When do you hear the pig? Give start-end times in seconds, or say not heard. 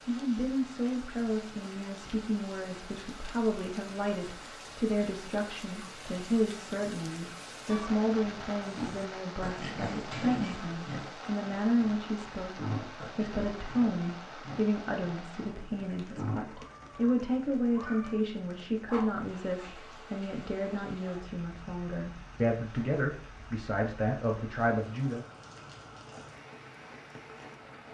8.6-16.4.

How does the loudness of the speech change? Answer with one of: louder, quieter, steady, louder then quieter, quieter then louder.
steady.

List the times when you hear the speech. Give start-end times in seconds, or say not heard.
0.1-25.2.